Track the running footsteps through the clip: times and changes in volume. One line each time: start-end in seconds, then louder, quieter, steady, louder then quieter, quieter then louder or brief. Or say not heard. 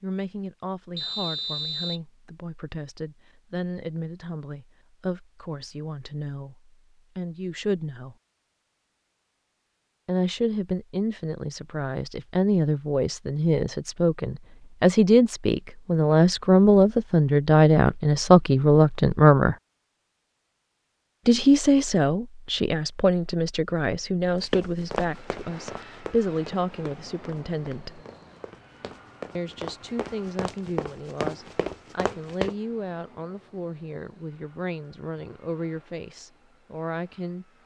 24.4-32.5 quieter then louder.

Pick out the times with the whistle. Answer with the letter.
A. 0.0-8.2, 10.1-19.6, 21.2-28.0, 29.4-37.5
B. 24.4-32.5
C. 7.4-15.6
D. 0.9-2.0
D.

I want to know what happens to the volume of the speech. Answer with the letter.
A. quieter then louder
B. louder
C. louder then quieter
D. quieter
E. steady
C.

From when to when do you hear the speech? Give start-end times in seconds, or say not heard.
0.0-8.2, 10.1-19.6, 21.2-28.0, 29.4-37.5.